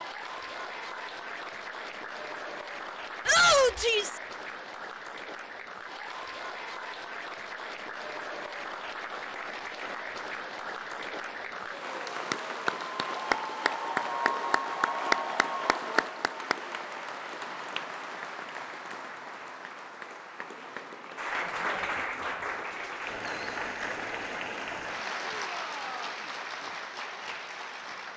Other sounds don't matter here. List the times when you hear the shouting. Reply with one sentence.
The shouting can be heard from 3.2 to 4.2 s and from 25.2 to 26.1 s.